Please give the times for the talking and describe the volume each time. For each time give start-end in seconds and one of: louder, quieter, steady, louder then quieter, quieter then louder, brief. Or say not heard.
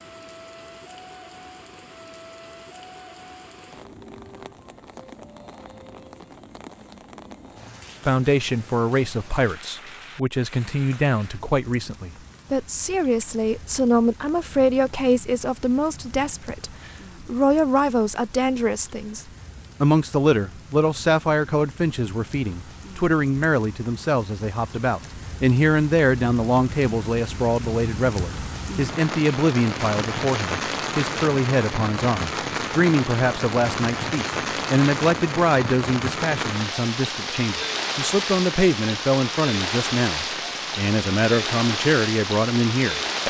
8.0-43.2 steady.